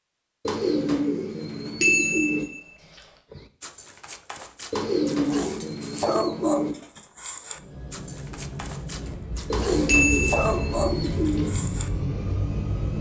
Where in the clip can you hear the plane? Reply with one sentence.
You can hear the plane from 7.5 to 12.9 s.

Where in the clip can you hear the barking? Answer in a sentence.
The barking can be heard from 3.3 to 11.9 s.